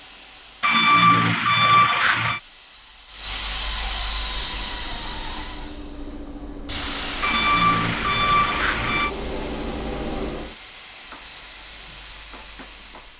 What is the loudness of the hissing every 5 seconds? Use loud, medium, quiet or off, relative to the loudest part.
loud, loud, medium.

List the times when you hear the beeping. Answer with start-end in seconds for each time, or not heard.
0.6-2.4, 7.2-9.1.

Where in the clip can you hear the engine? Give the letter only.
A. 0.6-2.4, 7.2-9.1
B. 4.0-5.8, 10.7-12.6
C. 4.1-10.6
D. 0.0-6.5
C.